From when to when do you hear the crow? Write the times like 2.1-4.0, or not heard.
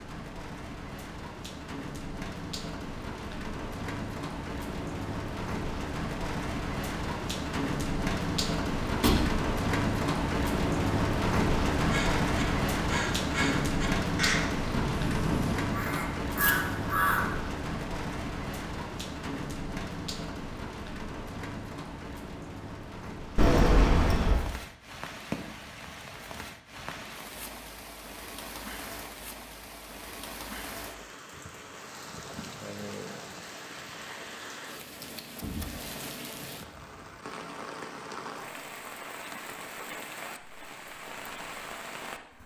11.8-17.3.